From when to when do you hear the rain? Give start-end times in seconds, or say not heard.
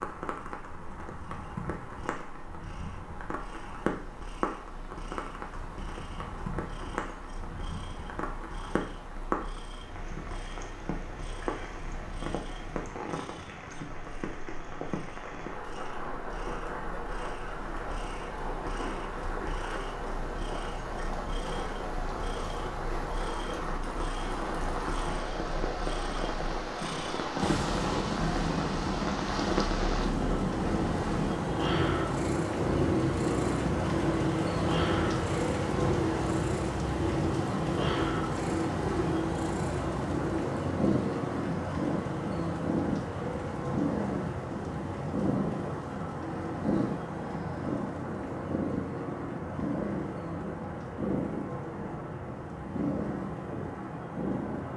0.0-54.7.